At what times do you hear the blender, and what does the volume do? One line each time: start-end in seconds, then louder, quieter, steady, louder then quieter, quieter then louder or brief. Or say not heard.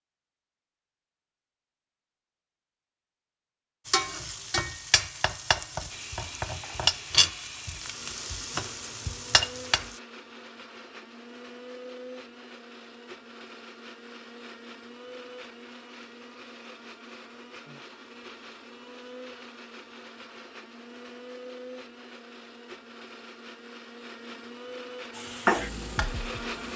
5.8-26.7 steady.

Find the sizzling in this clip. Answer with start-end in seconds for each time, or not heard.
3.9-10.0, 25.1-26.7.